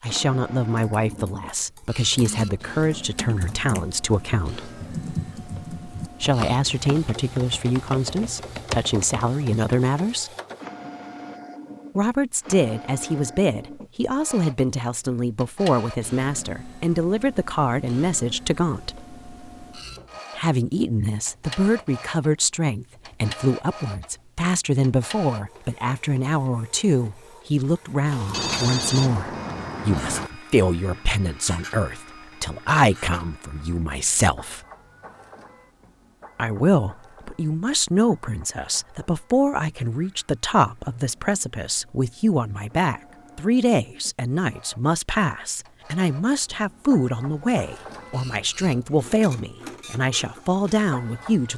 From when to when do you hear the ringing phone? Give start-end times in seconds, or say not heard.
28.3-30.3.